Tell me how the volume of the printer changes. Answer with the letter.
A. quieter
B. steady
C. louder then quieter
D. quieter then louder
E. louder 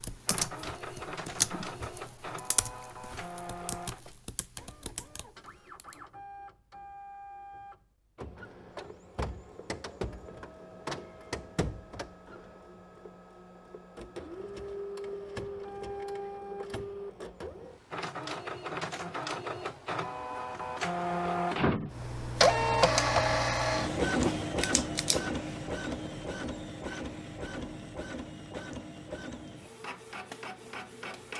C.